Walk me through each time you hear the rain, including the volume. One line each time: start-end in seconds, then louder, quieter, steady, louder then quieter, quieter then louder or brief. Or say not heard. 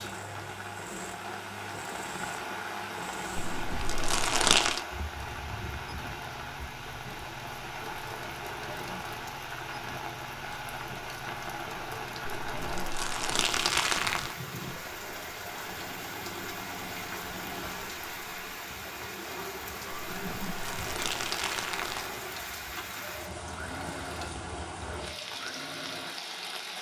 0.0-26.7 steady.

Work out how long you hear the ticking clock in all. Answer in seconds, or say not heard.
not heard.